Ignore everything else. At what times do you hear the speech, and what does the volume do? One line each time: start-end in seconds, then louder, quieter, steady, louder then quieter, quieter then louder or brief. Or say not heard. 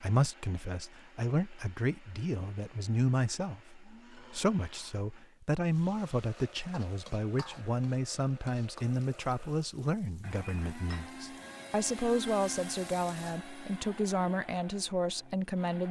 0.0-15.8 steady.